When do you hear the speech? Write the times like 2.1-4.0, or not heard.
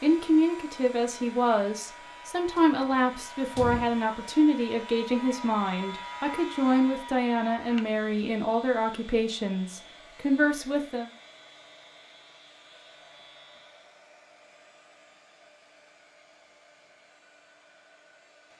0.0-11.1.